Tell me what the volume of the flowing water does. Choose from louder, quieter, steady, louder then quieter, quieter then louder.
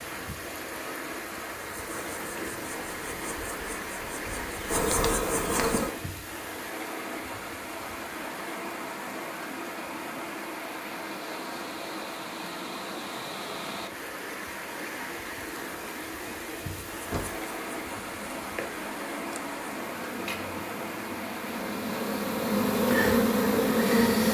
steady.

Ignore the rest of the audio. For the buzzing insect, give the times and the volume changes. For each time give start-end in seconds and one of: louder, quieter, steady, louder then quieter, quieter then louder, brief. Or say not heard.
1.6-6.0 louder
16.6-24.2 louder.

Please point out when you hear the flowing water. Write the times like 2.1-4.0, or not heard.
0.0-24.2.